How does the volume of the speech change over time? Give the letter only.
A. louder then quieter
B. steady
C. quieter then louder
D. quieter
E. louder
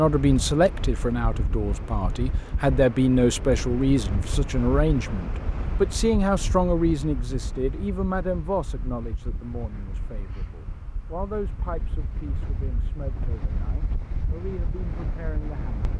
D.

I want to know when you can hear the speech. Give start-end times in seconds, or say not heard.
0.0-15.8.